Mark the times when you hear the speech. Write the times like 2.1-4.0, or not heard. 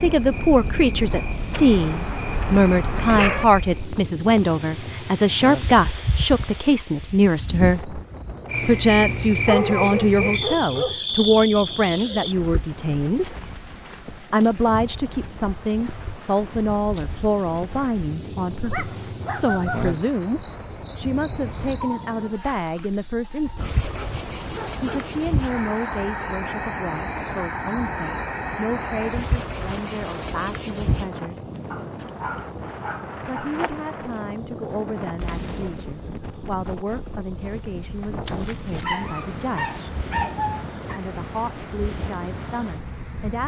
0.0-8.0, 8.7-13.3, 14.3-23.8, 24.8-31.4, 33.2-39.8, 40.8-43.4.